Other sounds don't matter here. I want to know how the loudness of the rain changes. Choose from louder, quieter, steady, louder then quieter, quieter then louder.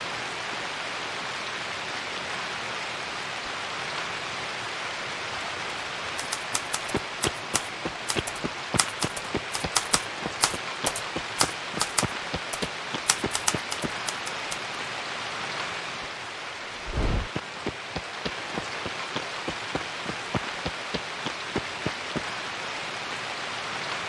steady.